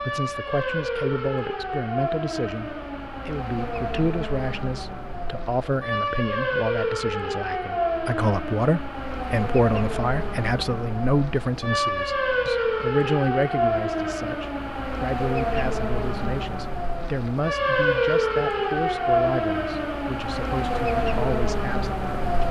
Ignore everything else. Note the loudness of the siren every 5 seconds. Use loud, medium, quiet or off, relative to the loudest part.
medium, loud, loud, loud, loud.